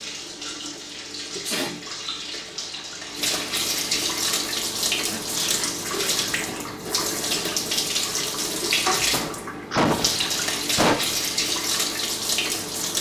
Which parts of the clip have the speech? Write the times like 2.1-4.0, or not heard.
not heard.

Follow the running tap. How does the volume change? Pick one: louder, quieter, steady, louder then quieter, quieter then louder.
louder.